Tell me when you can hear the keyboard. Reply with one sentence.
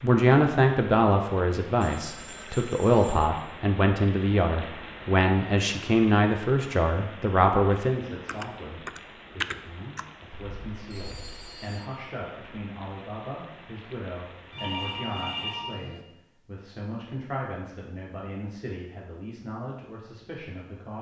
You can hear the keyboard from 8.2 to 10.1 s.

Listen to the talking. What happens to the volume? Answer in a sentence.
The loudness of the talking goes down.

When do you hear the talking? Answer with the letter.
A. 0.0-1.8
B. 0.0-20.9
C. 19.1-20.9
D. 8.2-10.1
B.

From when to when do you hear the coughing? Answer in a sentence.
The coughing can't be heard in this clip.